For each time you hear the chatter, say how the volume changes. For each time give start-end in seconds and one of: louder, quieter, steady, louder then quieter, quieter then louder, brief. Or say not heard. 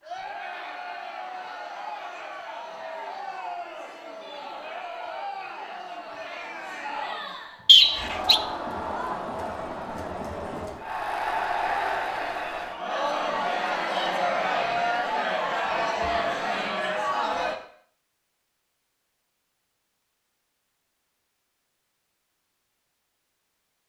0.0-17.6 louder.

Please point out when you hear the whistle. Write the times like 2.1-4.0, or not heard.
7.7-8.4.